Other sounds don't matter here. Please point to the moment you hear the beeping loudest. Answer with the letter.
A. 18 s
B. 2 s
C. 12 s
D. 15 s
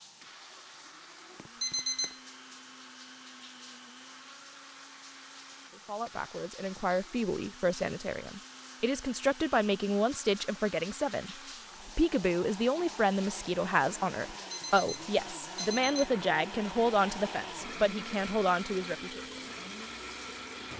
B.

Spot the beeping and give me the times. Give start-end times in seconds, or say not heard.
1.4-2.2, 14.5-16.1.